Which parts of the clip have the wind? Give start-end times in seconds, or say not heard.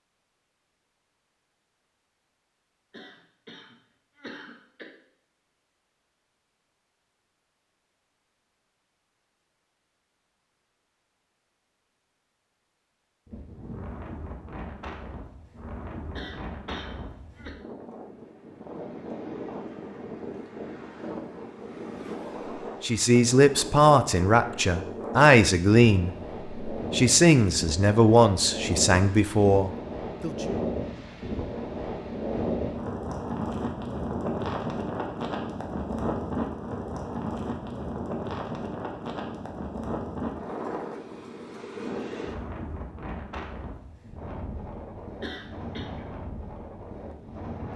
13.2-47.7.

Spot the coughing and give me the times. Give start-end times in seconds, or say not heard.
2.9-4.9, 16.1-17.6, 45.2-45.9.